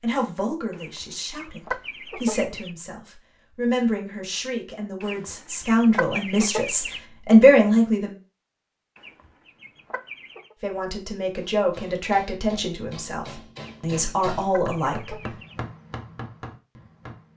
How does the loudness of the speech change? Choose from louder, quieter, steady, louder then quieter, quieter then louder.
louder then quieter.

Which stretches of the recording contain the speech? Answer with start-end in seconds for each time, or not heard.
0.0-8.2, 10.6-15.3.